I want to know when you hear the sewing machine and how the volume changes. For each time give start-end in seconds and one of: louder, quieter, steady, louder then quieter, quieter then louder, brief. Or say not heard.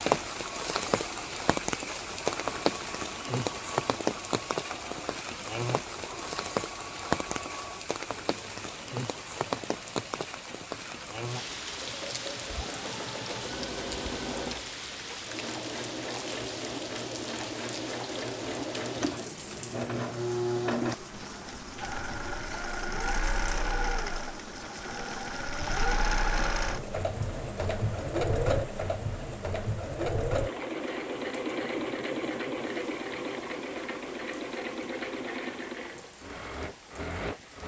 0.0-37.6 louder.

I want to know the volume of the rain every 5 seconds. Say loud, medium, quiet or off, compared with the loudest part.
loud, loud, medium, medium, quiet, quiet, quiet, quiet.